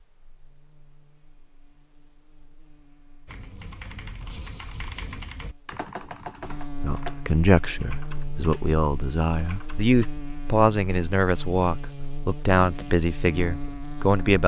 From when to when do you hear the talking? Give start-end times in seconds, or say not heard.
6.8-14.4.